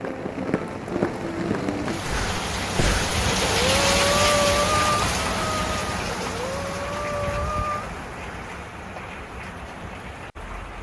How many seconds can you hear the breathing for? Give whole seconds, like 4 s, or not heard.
6 s.